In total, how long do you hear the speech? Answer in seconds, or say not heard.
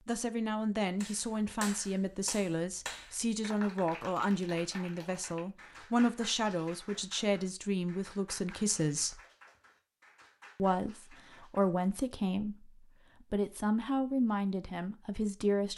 14 s.